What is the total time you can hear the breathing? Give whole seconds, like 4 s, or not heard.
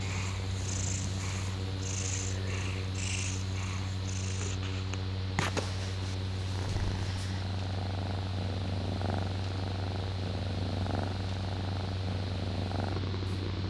not heard.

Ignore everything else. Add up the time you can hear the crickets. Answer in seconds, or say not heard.
not heard.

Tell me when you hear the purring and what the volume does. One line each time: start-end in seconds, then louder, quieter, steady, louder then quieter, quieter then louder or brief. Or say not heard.
0.0-13.6 steady.